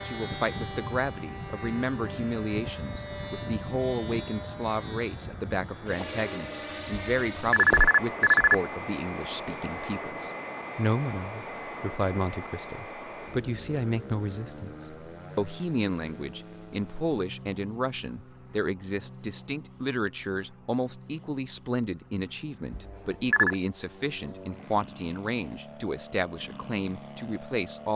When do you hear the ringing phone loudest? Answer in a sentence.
The volume of the ringing phone peaks at 8 seconds.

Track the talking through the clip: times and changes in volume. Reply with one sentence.
You can hear the talking from 0.1 to 27.9 s, at a steady volume.